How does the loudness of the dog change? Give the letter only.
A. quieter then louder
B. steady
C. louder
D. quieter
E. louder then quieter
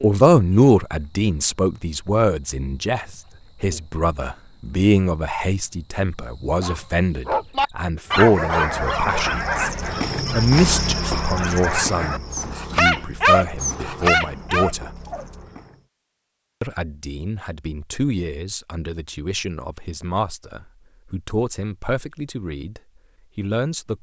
A.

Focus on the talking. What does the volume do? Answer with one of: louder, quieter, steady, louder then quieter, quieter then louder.
quieter.